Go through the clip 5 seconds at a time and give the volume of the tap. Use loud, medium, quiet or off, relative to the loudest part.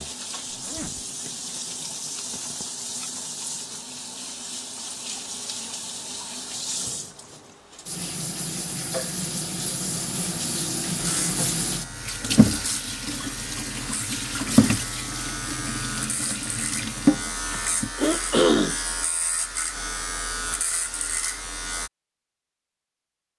medium, medium, loud, loud, off.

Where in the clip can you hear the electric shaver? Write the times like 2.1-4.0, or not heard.
10.9-21.9.